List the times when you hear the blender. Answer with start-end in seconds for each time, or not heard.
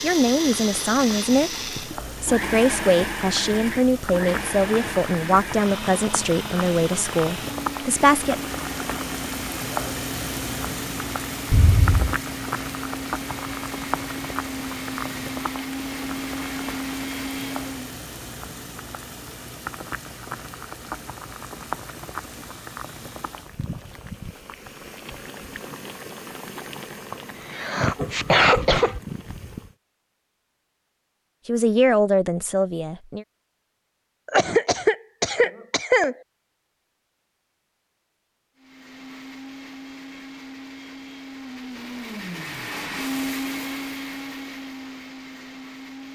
0.0-18.0, 38.5-46.1.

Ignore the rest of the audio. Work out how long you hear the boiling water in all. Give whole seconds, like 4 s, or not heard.
30 s.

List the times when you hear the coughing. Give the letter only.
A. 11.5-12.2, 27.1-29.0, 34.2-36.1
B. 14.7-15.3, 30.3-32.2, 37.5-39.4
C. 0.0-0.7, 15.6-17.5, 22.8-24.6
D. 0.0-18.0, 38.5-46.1
A.